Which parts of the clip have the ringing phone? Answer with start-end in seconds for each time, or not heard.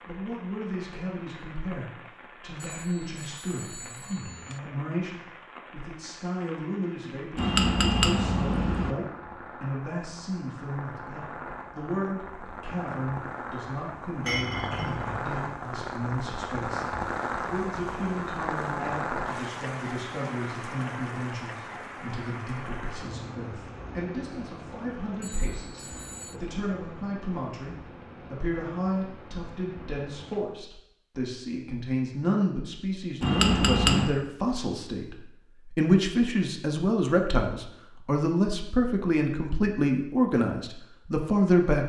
2.6-4.6, 25.2-26.4.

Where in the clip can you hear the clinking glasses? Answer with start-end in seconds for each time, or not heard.
7.3-8.9, 14.2-15.2, 33.2-34.1.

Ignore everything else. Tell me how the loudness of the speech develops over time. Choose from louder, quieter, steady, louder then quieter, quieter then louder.
louder.